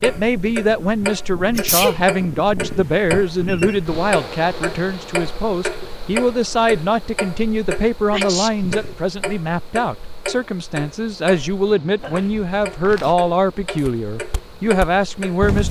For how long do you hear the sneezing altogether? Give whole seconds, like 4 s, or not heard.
2 s.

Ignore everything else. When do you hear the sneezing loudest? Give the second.
2 s.